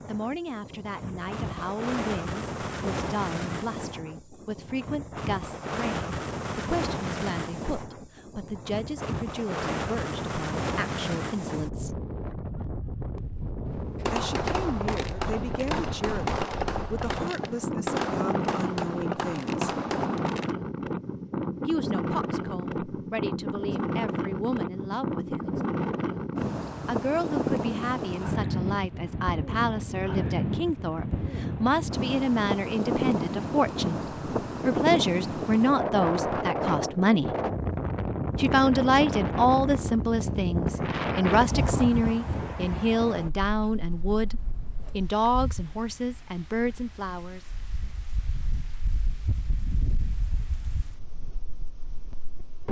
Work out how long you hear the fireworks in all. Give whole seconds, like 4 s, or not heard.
7 s.